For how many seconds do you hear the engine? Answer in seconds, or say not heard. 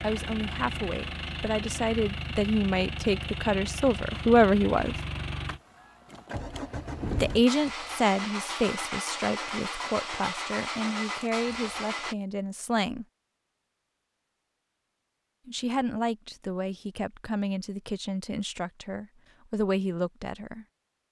12 s.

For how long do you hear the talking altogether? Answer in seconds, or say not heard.
16 s.